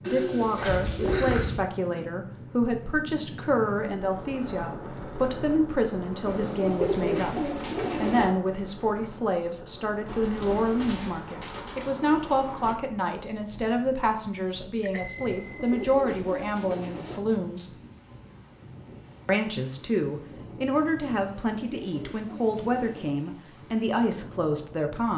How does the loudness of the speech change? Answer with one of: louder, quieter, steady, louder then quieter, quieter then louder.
steady.